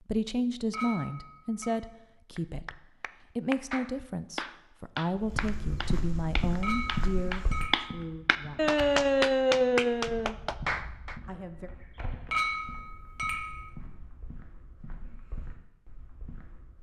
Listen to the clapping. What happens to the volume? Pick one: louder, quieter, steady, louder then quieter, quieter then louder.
louder.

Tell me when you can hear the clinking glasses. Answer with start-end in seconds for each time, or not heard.
0.7-1.7, 6.6-8.0, 12.3-13.7.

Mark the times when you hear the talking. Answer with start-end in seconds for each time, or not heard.
0.1-8.8, 11.2-11.7.